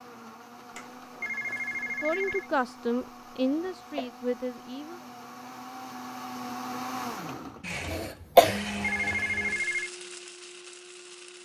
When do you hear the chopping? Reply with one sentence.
You can't hear the chopping here.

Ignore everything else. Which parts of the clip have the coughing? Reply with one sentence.
You can hear the coughing from 3.5 to 4.1 s and from 7.9 to 8.6 s.